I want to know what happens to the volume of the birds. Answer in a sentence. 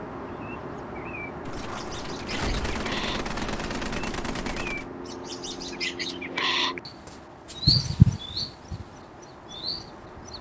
The loudness of the birds goes up.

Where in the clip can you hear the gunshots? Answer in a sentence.
The gunshots can be heard from 1.4 to 4.9 s.